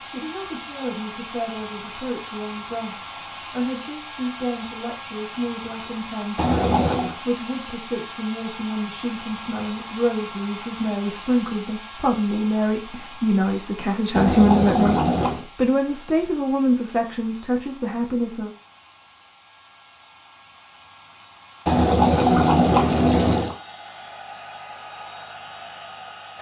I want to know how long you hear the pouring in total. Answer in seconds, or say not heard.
4 s.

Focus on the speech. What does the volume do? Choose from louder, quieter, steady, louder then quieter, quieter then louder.
louder.